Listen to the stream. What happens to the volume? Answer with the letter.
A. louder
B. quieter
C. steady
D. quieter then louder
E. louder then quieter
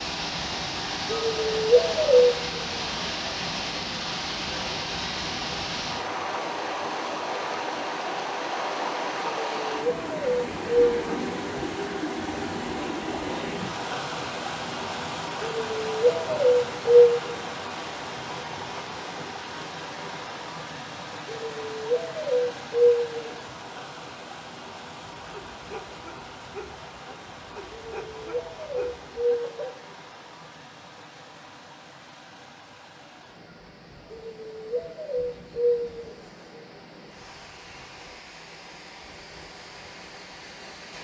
B.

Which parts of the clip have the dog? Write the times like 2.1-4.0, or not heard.
25.1-29.8.